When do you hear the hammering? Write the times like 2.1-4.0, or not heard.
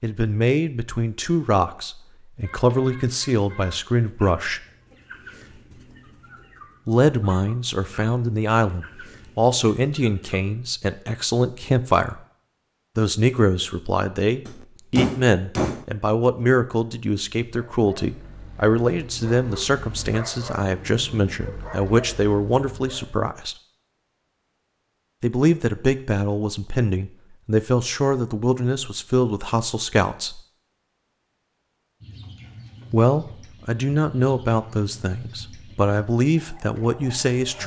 14.4-15.8.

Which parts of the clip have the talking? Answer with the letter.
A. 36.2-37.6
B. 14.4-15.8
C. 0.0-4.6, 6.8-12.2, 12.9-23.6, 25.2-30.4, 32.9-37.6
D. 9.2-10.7
C.